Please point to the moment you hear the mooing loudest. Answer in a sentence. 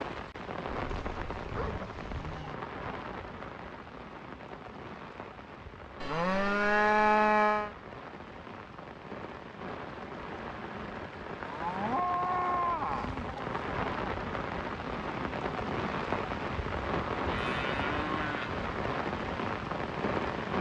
The loudest moment of the mooing is at 7 seconds.